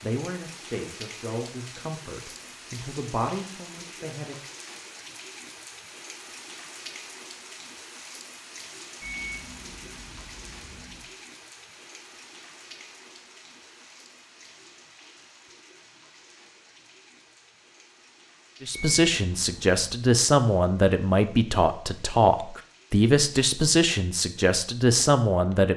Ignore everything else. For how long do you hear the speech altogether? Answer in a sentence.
You can hear the speech for 12 seconds altogether.